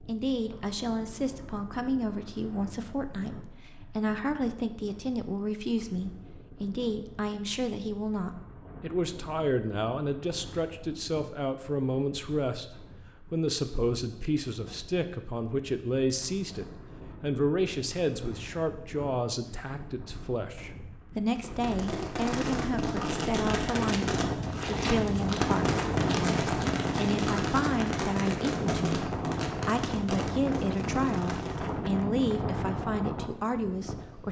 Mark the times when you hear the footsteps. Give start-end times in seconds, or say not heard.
not heard.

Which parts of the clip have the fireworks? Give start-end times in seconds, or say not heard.
21.4-31.8.